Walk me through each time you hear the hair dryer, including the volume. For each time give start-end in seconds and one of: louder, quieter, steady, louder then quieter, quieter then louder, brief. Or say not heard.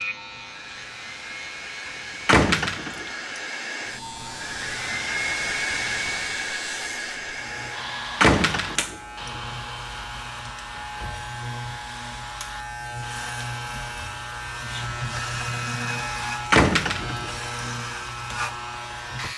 0.0-19.3 louder then quieter.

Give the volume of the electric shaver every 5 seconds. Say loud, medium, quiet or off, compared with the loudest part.
medium, medium, loud, loud.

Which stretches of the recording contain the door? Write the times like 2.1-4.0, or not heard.
2.2-3.0, 8.2-8.9, 16.5-17.3.